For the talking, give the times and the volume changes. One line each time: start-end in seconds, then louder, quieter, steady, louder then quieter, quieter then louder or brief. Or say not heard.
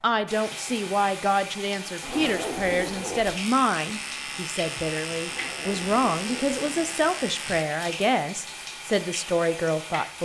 0.0-10.2 steady.